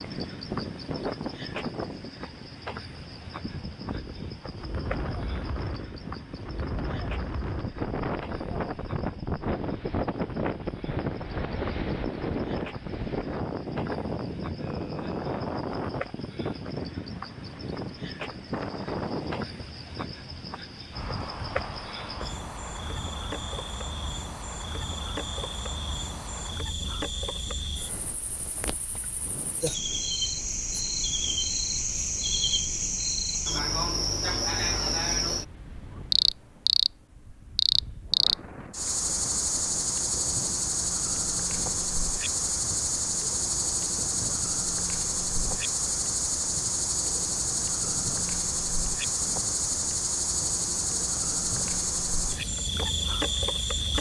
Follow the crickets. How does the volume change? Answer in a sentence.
The volume of the crickets goes up.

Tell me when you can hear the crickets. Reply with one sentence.
The crickets can be heard from 0.0 to 53.9 s.